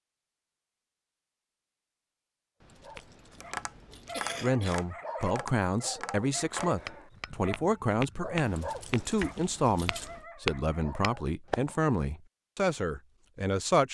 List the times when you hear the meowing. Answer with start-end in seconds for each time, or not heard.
not heard.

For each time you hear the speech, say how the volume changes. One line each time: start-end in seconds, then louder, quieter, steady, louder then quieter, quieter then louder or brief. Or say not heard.
4.4-13.8 steady.